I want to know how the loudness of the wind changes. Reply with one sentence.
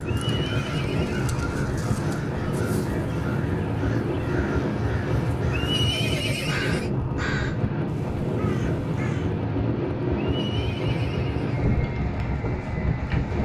The volume of the wind stays about the same.